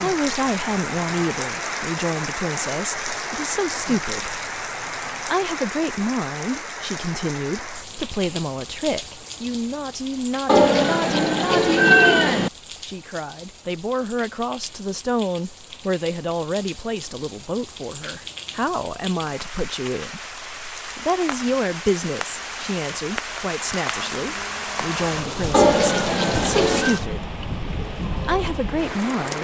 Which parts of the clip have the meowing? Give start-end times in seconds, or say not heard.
10.4-12.5, 25.5-27.0.